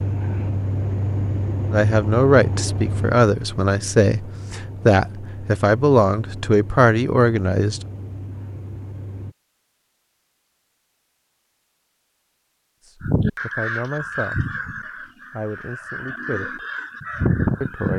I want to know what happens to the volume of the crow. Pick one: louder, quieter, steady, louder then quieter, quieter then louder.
quieter then louder.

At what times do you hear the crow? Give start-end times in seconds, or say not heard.
13.0-17.9.